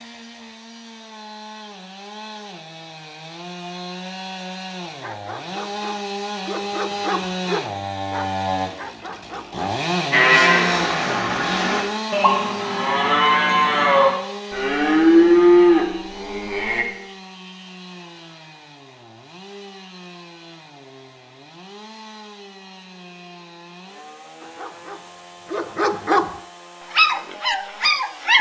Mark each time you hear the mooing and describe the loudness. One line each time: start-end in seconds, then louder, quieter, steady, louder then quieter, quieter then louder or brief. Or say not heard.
10.1-16.9 louder.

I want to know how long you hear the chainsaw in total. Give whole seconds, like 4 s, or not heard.
28 s.